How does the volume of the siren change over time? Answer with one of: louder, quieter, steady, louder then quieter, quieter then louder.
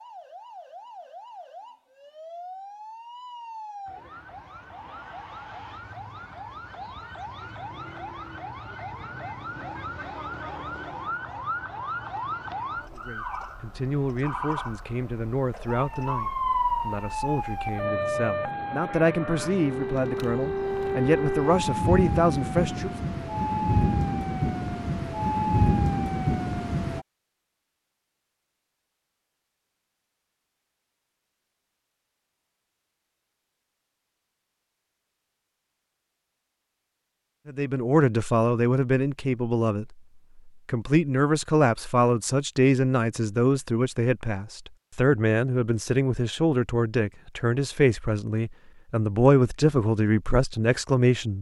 louder.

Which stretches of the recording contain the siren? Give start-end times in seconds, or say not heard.
0.0-27.1.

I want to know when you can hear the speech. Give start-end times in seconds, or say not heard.
12.9-22.9, 37.5-51.3.